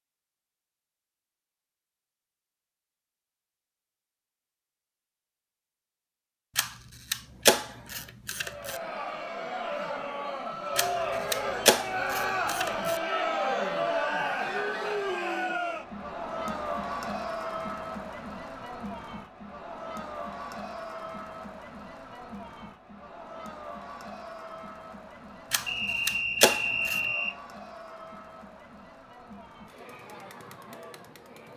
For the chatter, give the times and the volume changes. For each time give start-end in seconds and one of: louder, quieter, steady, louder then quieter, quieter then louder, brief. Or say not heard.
8.4-31.5 quieter.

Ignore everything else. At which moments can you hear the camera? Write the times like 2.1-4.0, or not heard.
6.5-8.8, 10.8-13.0, 25.5-27.1.